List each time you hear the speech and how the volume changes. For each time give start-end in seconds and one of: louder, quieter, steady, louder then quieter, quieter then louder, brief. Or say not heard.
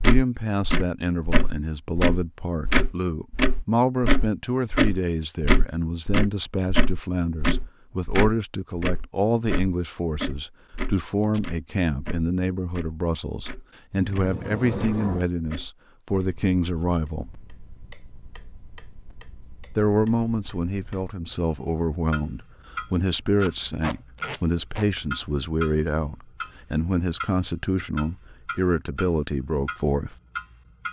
0.0-17.2 steady
19.8-30.1 steady.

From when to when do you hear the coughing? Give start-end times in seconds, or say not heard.
not heard.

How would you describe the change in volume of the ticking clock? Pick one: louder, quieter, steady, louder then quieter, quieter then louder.
quieter then louder.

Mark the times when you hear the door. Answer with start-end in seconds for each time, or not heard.
13.9-15.2.